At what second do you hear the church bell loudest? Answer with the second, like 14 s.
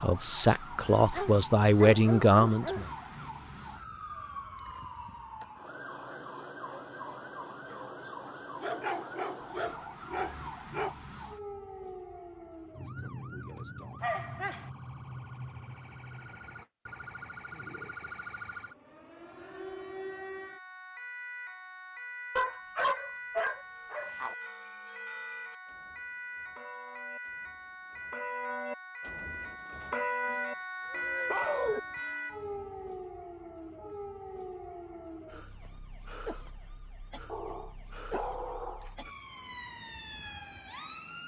30 s.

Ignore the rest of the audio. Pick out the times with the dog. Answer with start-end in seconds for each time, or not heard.
1.1-2.9, 8.6-10.9, 14.0-14.7, 22.4-24.4, 29.8-31.8, 37.2-38.9.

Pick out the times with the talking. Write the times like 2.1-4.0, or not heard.
0.0-2.9.